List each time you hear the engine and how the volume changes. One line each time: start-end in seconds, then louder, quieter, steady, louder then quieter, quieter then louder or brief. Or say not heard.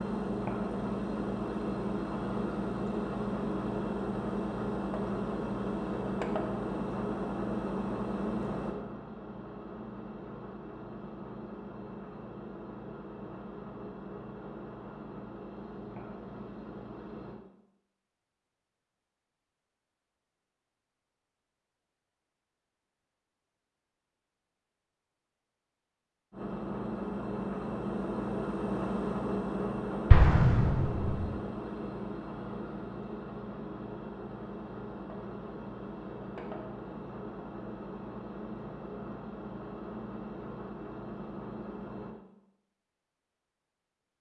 0.0-17.4 quieter
26.3-42.1 quieter.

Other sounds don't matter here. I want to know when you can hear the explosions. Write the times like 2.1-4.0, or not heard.
30.1-31.3.